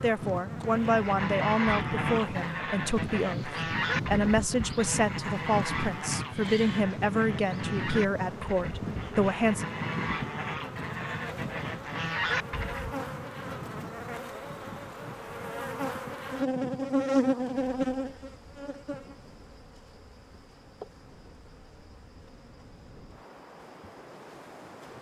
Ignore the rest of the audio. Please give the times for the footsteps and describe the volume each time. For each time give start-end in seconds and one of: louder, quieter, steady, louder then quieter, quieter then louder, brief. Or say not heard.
not heard.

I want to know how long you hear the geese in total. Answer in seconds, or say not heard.
12 s.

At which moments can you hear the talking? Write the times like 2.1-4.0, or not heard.
0.0-9.7.